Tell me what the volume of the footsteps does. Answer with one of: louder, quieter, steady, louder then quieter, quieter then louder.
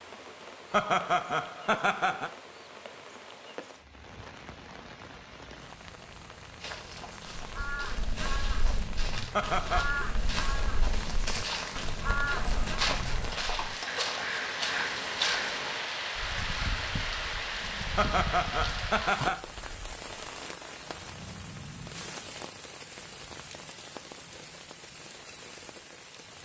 louder.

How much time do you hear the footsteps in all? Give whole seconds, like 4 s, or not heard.
9 s.